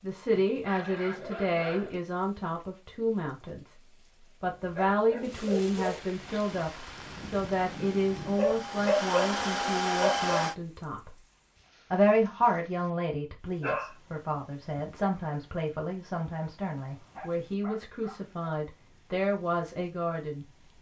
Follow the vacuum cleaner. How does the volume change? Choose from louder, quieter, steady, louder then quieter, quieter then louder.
louder.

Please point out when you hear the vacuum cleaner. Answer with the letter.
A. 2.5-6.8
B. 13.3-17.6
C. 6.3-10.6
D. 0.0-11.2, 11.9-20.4
C.